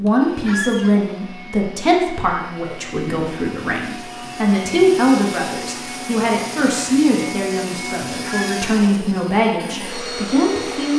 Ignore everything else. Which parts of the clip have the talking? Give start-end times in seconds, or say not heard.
0.0-10.9.